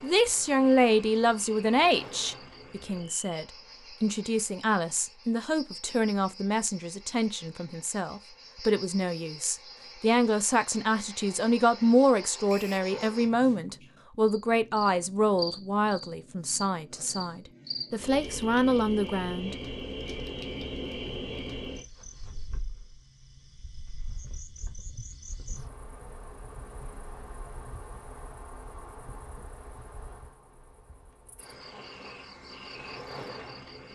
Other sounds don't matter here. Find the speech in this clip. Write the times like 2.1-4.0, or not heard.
0.0-19.6.